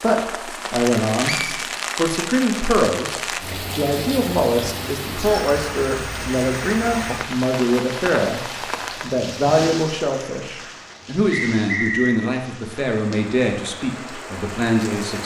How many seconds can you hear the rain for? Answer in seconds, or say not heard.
15 s.